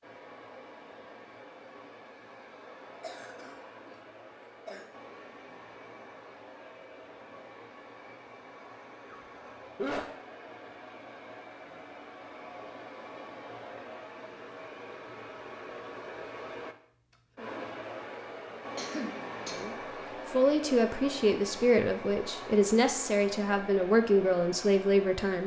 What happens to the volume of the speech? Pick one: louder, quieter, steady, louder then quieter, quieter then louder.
steady.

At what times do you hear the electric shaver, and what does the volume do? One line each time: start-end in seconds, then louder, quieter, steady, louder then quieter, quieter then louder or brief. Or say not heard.
not heard.